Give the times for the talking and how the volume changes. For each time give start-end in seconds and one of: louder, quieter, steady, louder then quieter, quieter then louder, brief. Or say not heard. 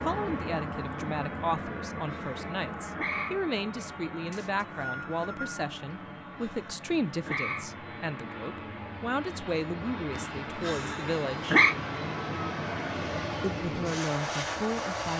0.0-11.6 steady
13.4-15.1 brief.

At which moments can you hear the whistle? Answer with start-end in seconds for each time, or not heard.
4.3-5.5.